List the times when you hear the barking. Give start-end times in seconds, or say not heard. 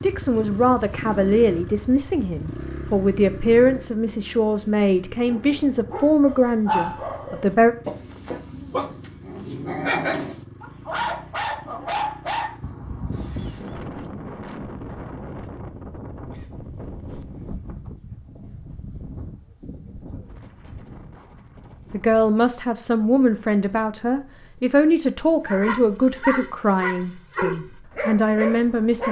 5.2-13.8, 25.4-29.0.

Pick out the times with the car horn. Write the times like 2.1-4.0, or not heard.
not heard.